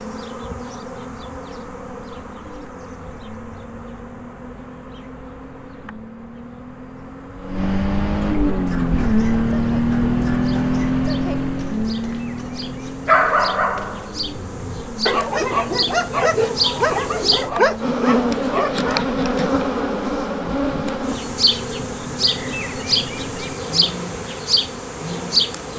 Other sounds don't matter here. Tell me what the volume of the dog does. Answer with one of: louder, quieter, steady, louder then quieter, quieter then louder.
louder.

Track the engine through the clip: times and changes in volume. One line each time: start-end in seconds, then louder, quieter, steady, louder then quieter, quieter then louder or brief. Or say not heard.
0.0-25.7 louder then quieter.